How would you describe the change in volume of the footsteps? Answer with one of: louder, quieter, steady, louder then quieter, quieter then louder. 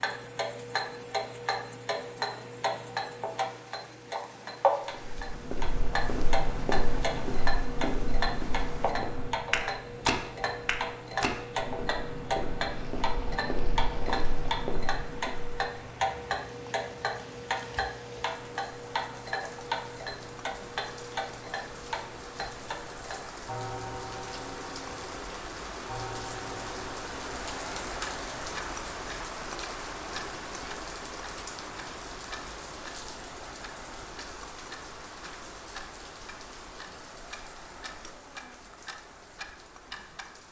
louder then quieter.